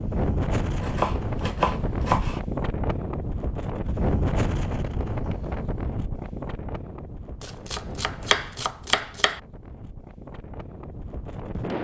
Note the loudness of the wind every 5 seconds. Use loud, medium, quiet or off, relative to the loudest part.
loud, medium, medium.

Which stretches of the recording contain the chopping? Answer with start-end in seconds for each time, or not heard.
0.8-2.4, 7.4-9.4.